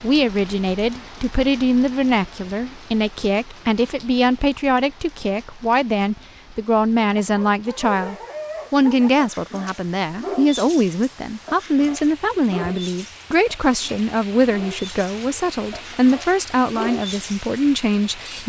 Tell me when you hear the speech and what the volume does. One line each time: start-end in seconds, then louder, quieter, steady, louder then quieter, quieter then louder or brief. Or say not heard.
0.0-18.4 steady.